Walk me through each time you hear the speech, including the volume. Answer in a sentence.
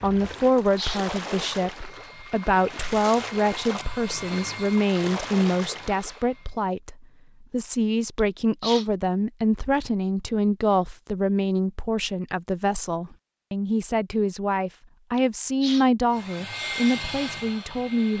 You can hear the speech from 0.0 to 18.1 s, at a steady volume.